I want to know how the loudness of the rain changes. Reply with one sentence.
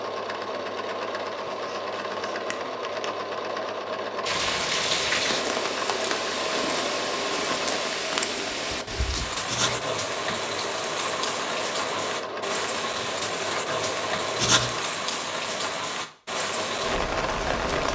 The volume of the rain stays about the same.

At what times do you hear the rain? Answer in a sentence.
You can hear the rain from 4.2 to 17.8 s.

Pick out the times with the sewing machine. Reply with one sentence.
You can hear the sewing machine from 0.0 to 17.8 s.